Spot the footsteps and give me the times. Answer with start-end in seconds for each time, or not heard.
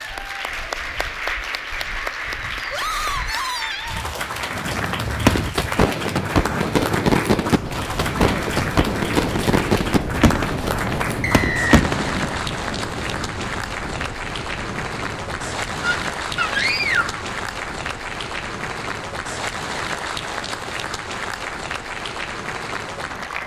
not heard.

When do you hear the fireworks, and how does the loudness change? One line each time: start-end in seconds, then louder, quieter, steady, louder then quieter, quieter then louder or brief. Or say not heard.
4.4-12.5 steady.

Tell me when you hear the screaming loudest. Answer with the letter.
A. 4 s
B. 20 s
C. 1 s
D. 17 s
D.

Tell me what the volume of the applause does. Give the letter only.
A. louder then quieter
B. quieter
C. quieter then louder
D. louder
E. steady
E.